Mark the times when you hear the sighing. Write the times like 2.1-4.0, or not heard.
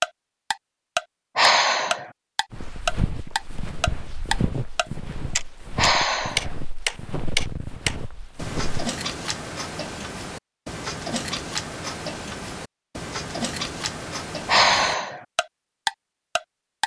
1.4-2.1, 5.8-6.5, 14.4-15.2.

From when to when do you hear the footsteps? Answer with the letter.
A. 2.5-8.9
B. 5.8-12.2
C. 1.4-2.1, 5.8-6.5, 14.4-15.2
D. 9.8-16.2
A.